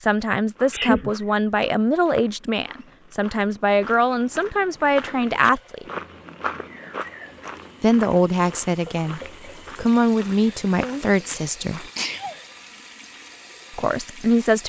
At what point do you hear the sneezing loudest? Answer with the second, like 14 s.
1 s.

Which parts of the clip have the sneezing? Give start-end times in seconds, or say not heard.
0.7-1.1, 10.8-12.3.